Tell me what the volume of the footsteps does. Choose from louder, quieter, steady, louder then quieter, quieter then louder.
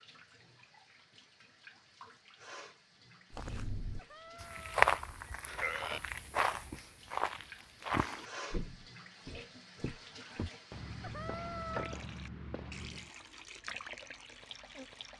quieter.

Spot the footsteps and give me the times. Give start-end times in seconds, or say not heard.
3.3-13.1.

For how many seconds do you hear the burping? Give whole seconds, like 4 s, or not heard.
2 s.